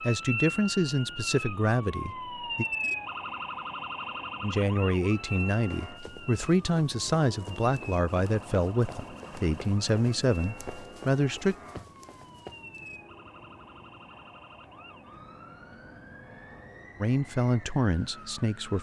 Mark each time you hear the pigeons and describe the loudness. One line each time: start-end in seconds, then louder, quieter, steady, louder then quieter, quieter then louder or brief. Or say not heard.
not heard.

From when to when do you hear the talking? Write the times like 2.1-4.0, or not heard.
0.0-2.6, 4.4-11.6, 17.0-18.7.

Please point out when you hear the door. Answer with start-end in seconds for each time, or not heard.
not heard.